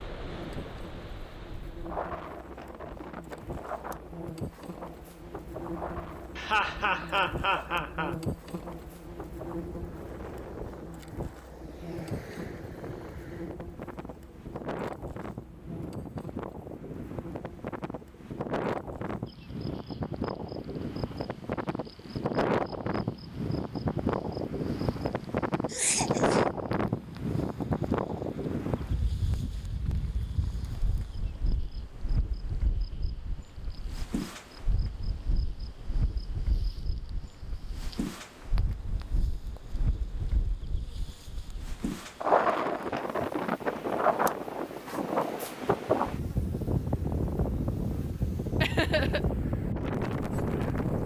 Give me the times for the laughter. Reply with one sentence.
The laughter can be heard from 6.3 to 8.2 s, from 25.6 to 26.5 s and from 48.6 to 49.2 s.